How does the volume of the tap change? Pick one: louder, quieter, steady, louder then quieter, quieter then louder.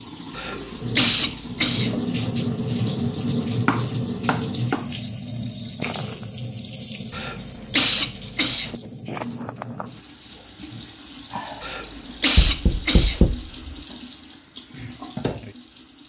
quieter.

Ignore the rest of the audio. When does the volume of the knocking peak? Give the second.
13 s.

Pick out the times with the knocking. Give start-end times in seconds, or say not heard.
3.6-4.8, 12.3-13.8.